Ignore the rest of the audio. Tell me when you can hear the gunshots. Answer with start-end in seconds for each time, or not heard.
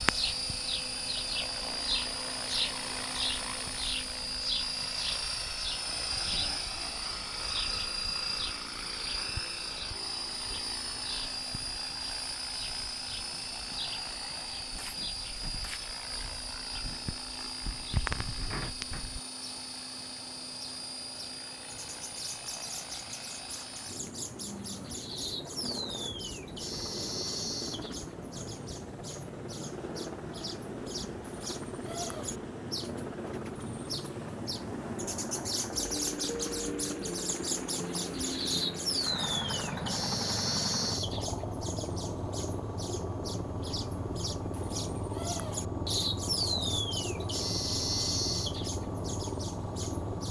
14.3-15.8.